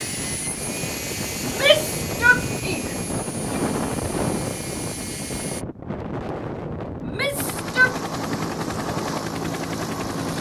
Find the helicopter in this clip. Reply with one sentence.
You can hear the helicopter from 0.0 to 5.7 s and from 7.3 to 10.3 s.